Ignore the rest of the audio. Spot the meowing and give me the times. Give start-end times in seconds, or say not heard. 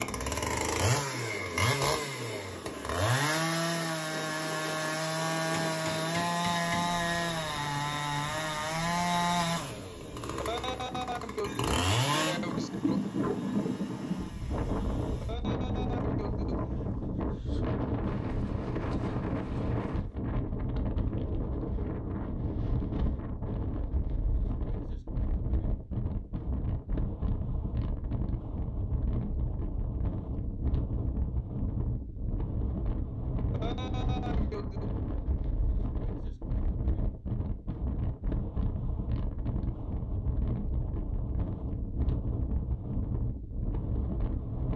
not heard.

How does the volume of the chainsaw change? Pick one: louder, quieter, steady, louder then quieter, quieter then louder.
quieter.